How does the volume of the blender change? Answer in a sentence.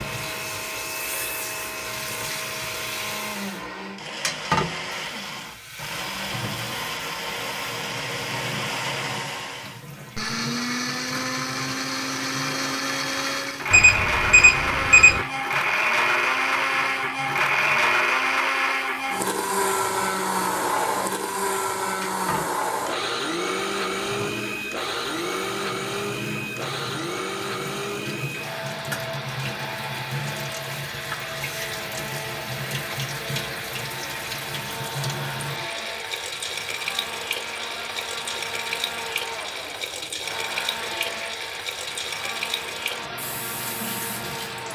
The loudness of the blender goes up, then down.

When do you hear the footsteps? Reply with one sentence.
You can't hear the footsteps here.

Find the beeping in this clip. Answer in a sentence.
The beeping can be heard from 13.7 to 15.2 s.